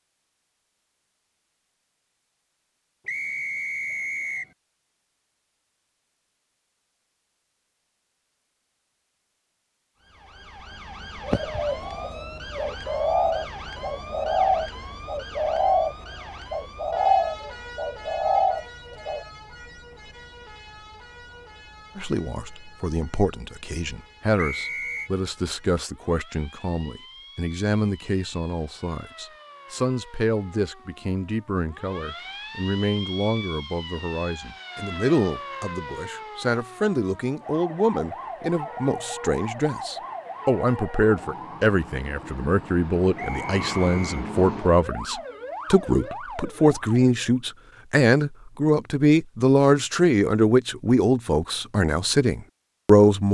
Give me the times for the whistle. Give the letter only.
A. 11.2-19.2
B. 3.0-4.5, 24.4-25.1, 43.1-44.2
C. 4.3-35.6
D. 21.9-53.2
B.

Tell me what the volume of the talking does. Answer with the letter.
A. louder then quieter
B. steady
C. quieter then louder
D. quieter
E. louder
E.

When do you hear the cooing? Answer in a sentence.
The cooing can be heard from 11.2 to 19.2 s.